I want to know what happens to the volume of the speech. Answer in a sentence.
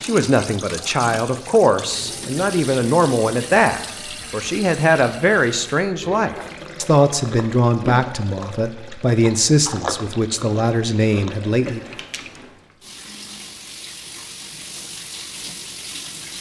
The volume of the speech stays about the same.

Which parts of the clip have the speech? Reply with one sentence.
The speech can be heard from 0.0 to 11.8 s.